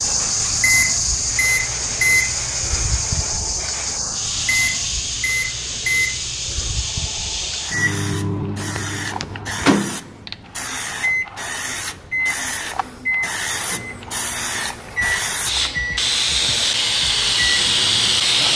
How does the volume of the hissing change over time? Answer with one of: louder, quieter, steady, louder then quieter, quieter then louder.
louder.